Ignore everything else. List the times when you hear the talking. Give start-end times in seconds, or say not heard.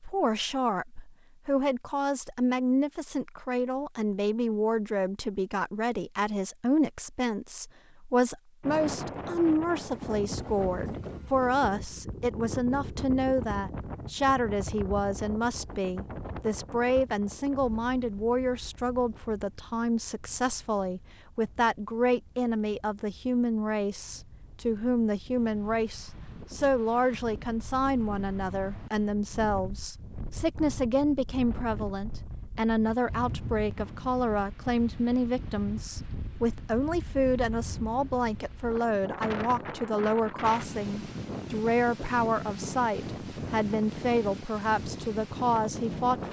0.0-46.2.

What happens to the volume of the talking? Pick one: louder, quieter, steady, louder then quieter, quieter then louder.
steady.